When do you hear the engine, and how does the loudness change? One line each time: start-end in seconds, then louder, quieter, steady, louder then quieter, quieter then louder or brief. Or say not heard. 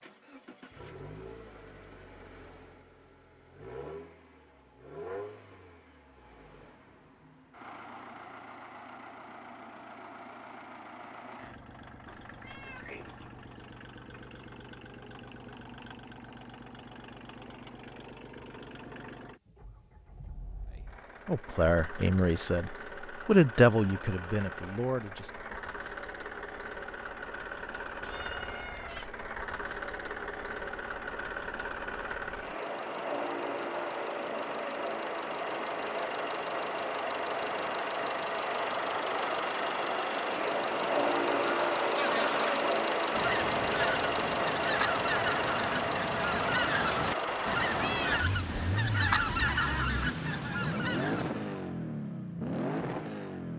0.0-53.5 louder.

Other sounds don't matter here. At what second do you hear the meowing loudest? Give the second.
48 s.